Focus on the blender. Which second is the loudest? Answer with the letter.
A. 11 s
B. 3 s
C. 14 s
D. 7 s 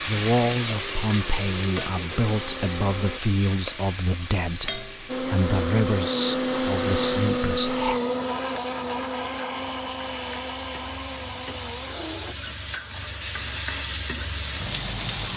D.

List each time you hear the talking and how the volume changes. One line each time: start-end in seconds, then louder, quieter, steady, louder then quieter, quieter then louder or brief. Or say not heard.
0.1-8.0 steady.